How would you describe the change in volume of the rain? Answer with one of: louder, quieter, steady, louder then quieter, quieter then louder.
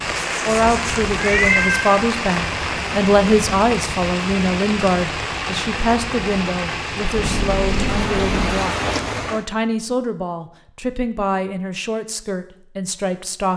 steady.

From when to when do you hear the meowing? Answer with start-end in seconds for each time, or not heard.
0.1-2.0, 7.2-8.6.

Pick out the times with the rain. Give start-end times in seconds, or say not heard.
0.0-9.4.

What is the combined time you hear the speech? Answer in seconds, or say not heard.
13 s.